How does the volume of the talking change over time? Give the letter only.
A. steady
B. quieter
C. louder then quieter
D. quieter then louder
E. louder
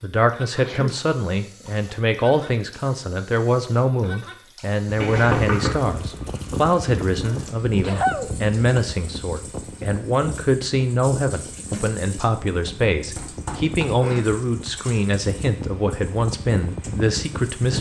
A.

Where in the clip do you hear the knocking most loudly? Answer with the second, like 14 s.
5 s.